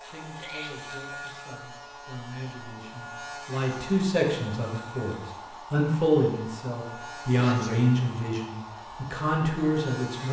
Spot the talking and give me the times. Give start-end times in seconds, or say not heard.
0.0-10.2.